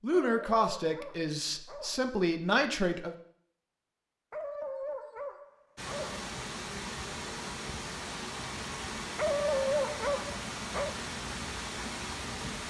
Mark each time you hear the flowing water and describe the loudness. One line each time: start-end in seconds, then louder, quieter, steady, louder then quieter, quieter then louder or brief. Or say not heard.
5.8-12.6 steady.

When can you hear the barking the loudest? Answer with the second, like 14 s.
10 s.